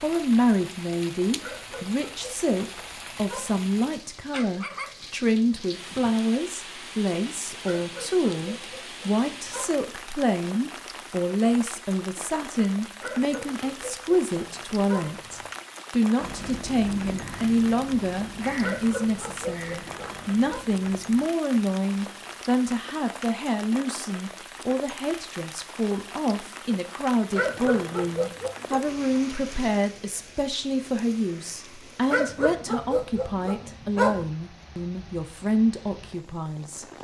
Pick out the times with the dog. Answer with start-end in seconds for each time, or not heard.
1.4-3.7, 7.6-9.8, 13.0-15.5, 18.6-20.6, 27.4-28.8, 32.1-34.2.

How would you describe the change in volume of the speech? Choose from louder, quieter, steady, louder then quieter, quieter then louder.
steady.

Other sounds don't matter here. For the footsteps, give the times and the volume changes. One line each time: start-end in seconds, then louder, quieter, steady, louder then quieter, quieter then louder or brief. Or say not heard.
not heard.